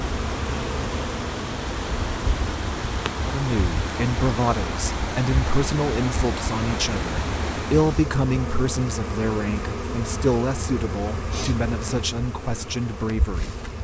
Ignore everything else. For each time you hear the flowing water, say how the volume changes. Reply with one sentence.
You can hear the flowing water from 0.0 to 8.2 s, at a steady volume.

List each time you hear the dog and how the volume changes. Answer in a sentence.
The dog can't be heard in this clip.